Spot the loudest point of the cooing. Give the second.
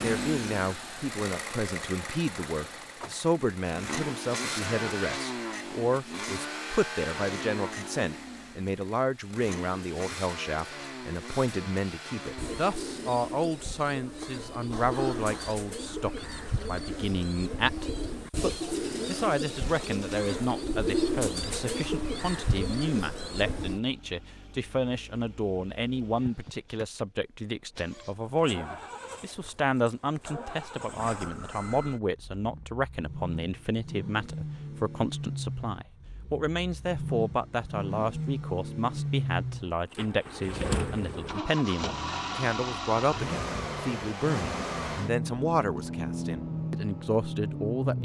21 s.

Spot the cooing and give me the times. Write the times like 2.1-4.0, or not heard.
12.3-23.8.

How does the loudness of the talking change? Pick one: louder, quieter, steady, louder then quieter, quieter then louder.
steady.